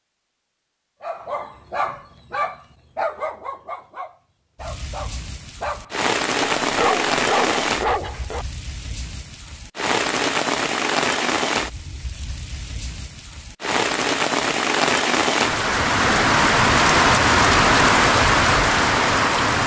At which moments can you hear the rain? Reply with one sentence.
You can hear the rain from 4.6 to 19.6 s.